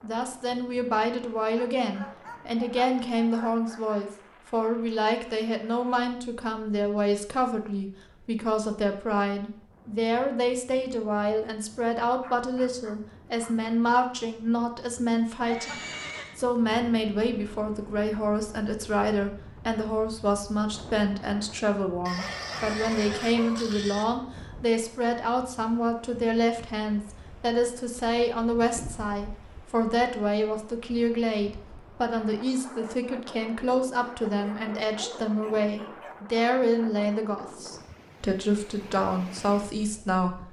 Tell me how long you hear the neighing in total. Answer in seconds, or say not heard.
3 s.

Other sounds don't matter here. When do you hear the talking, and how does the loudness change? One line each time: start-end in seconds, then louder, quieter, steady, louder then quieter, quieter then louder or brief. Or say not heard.
0.0-40.4 steady.